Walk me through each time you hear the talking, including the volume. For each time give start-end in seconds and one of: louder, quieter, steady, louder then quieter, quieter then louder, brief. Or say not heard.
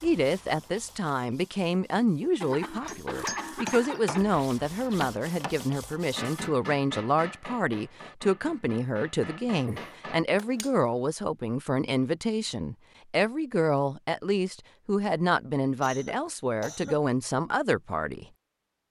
0.0-18.2 steady.